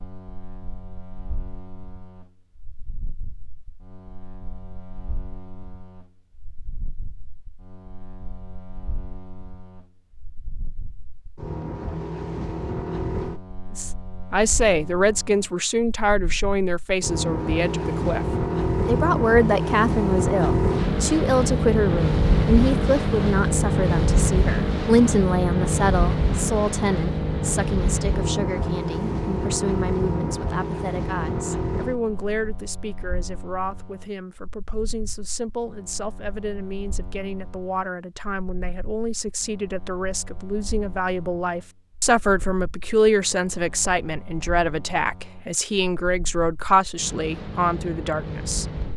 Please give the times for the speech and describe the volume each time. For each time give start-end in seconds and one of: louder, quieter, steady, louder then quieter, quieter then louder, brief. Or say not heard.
13.8-18.2 quieter
18.9-48.6 quieter then louder.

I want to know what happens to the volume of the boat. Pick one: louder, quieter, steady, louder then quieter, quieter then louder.
louder then quieter.